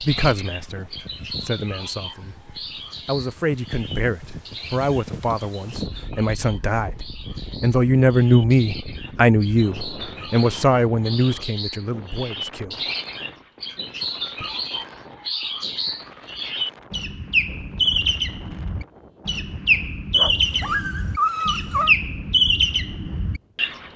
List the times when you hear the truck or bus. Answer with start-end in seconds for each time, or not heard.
not heard.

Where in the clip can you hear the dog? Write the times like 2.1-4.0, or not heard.
20.1-21.9.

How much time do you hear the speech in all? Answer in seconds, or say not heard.
13 s.